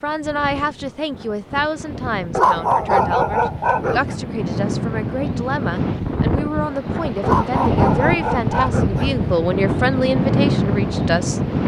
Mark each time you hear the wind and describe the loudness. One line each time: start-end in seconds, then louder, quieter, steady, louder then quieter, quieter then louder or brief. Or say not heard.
0.0-11.6 louder.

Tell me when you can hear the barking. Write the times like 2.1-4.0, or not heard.
2.4-4.2, 7.2-9.2.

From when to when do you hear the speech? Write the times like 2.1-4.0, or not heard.
0.0-11.4.